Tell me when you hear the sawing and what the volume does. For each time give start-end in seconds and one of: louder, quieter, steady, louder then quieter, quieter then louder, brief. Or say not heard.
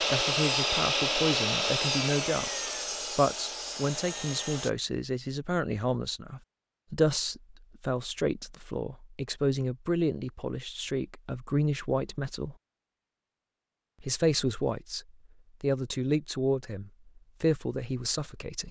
0.0-4.7 quieter.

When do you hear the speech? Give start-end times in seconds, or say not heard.
0.0-12.6, 14.0-18.6.